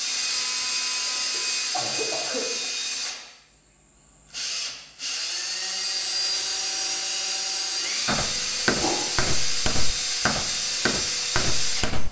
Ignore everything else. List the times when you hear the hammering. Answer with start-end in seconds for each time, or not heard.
8.1-12.0.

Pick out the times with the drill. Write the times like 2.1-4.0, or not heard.
0.0-12.0.